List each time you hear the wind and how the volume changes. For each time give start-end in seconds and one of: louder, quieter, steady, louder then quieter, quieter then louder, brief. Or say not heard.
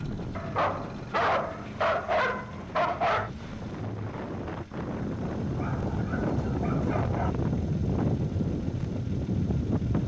0.0-10.0 louder.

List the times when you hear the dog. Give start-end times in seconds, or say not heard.
0.3-3.3, 5.5-7.3.